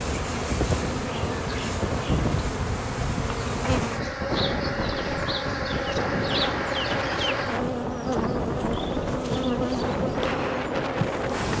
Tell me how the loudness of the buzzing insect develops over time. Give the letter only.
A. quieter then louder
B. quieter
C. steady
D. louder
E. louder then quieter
C.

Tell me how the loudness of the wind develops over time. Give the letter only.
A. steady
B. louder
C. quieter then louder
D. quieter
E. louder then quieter
A.